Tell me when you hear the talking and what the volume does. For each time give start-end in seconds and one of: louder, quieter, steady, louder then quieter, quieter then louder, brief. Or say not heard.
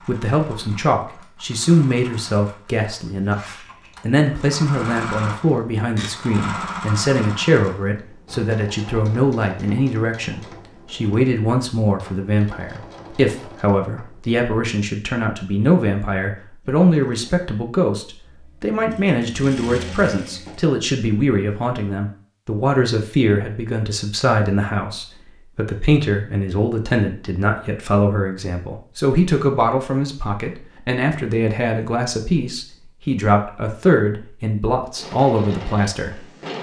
0.1-36.2 steady.